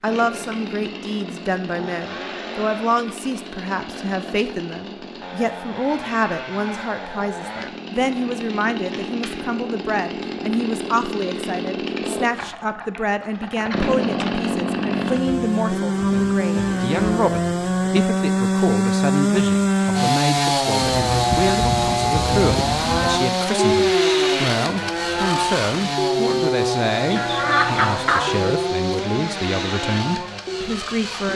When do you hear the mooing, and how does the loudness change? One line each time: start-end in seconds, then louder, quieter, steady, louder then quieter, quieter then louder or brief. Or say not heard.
20.8-30.7 louder then quieter.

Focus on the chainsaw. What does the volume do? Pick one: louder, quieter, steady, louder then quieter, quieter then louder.
louder then quieter.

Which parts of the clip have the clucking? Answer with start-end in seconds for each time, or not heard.
27.1-28.6.